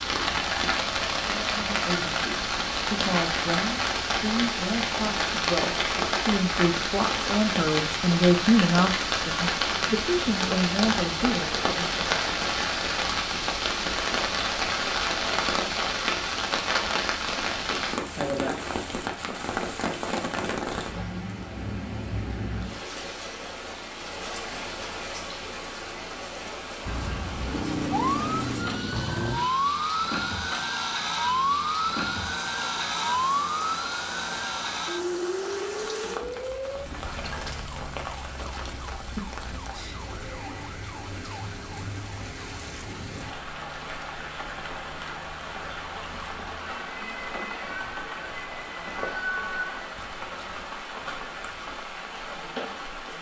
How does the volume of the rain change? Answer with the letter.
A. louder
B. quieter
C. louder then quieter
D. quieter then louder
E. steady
B.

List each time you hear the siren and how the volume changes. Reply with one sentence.
You can hear the siren from 26.9 to 49.9 s, getting quieter then louder.